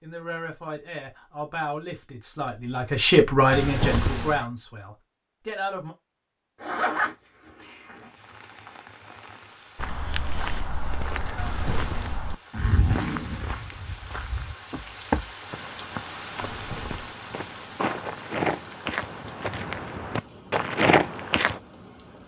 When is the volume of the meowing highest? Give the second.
4 s.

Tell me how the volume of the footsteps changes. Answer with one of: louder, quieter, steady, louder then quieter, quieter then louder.
louder.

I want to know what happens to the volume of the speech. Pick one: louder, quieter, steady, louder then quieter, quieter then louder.
louder then quieter.